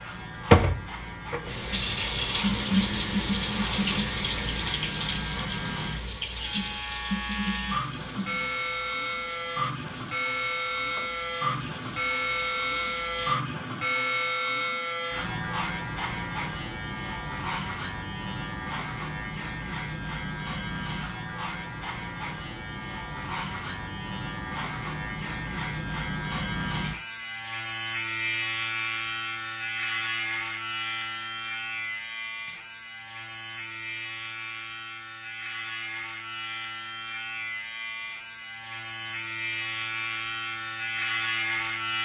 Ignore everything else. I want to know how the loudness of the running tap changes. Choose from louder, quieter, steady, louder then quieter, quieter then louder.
quieter.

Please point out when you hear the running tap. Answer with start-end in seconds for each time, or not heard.
0.1-13.4.